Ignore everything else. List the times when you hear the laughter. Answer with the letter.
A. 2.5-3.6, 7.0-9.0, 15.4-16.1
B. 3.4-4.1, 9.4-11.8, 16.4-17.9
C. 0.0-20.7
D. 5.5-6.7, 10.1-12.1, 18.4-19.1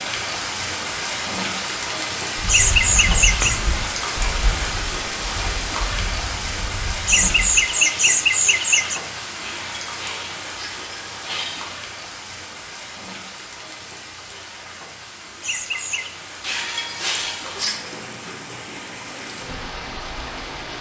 A.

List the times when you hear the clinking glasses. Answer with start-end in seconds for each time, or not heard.
3.4-4.1, 9.4-11.8, 16.4-17.9.